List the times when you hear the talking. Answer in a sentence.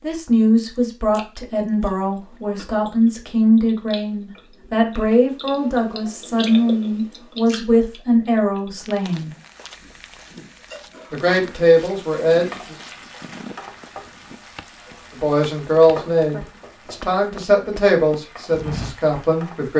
You can hear the talking from 0.0 to 9.3 s, from 11.1 to 12.8 s and from 15.1 to 19.7 s.